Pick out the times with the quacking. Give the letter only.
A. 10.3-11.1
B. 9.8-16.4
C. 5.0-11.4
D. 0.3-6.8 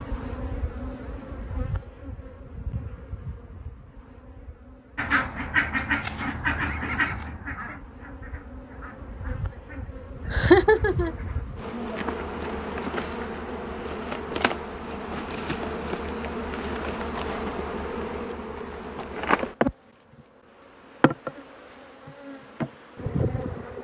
C.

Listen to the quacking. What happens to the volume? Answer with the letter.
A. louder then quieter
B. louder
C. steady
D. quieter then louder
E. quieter
E.